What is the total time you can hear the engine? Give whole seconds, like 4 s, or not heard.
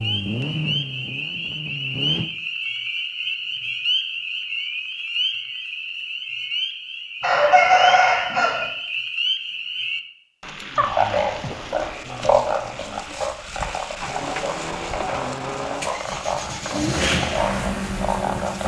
7 s.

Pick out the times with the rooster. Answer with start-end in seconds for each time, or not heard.
7.2-8.7.